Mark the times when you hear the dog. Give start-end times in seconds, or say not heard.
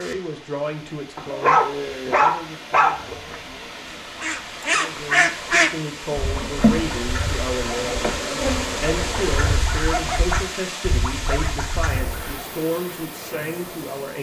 1.1-3.1.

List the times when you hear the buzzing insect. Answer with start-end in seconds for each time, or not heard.
6.1-9.7.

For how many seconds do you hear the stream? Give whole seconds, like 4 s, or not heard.
14 s.